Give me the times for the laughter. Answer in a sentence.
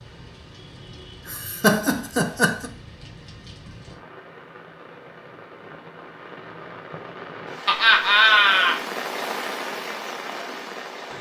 You can hear the laughter from 1.2 to 2.7 s and from 7.7 to 8.8 s.